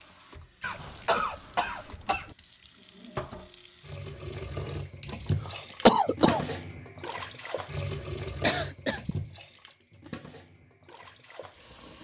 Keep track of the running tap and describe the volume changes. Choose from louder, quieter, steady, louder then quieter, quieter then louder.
louder then quieter.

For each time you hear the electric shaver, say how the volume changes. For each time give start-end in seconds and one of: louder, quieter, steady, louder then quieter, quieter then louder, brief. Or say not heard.
not heard.